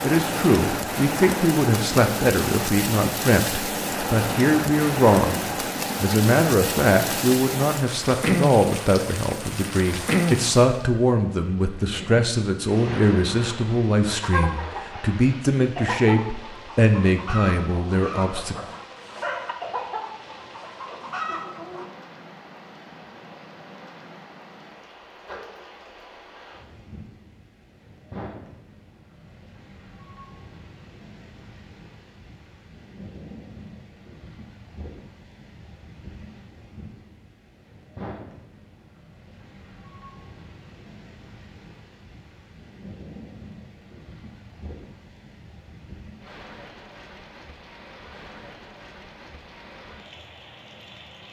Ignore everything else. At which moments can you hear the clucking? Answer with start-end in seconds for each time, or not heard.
12.6-21.9.